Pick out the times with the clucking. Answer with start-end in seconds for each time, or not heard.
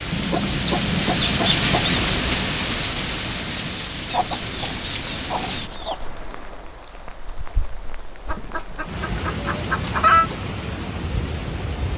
0.1-2.0, 4.1-6.0, 8.2-10.3.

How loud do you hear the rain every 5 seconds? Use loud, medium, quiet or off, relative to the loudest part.
loud, medium, medium.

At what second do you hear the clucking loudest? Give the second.
10 s.